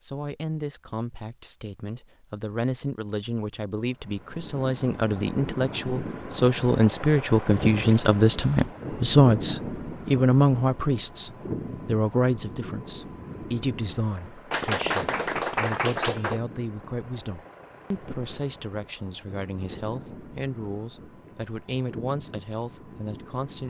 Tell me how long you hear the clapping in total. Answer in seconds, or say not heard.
2 s.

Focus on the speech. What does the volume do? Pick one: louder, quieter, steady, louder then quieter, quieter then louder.
louder then quieter.